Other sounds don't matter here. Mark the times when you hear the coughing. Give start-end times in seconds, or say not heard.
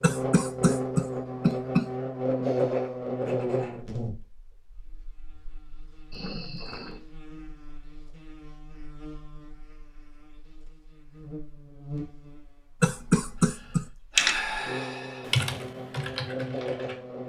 0.0-1.9, 12.8-13.8.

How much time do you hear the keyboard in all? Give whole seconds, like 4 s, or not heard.
3 s.